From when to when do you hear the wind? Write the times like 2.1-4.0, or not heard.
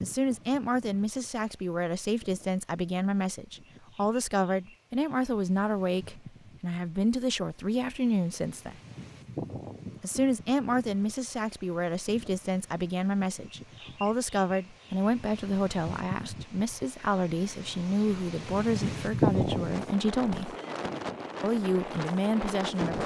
0.0-23.0.